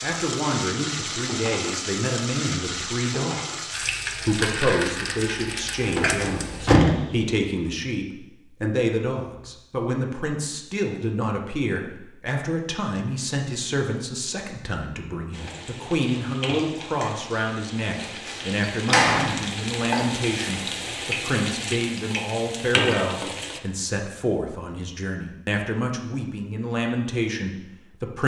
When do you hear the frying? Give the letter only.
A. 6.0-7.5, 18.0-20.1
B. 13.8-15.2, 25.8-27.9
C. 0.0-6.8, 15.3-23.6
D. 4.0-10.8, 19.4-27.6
C.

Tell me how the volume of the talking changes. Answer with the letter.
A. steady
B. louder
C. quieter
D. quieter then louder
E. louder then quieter
A.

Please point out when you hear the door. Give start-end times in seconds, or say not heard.
6.0-7.5, 18.0-20.1.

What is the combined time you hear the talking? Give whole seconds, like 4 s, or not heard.
28 s.